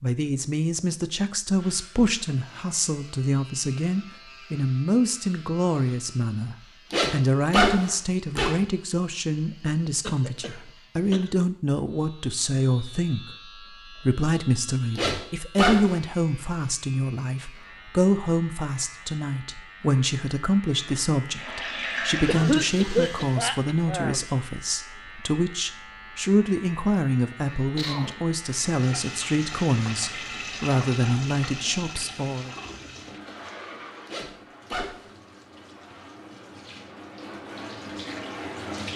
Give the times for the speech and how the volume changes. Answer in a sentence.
You can hear the speech from 0.0 to 32.5 s, at a steady volume.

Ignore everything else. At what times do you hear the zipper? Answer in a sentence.
You can hear the zipper from 6.9 to 8.6 s, from 14.9 to 16.0 s and from 34.0 to 35.1 s.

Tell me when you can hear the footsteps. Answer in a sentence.
You can't hear the footsteps here.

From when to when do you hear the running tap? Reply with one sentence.
You can hear the running tap from 21.2 to 23.5 s and from 28.4 to 38.9 s.